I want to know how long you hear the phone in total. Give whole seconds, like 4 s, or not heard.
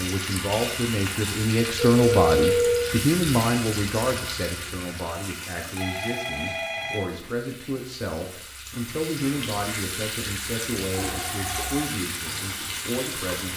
4 s.